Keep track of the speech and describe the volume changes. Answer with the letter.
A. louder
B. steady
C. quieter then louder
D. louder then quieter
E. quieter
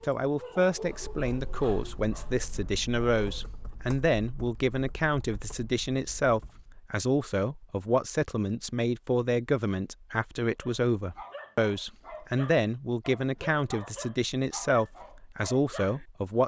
B.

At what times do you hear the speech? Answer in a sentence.
You can hear the speech from 0.0 to 16.4 s.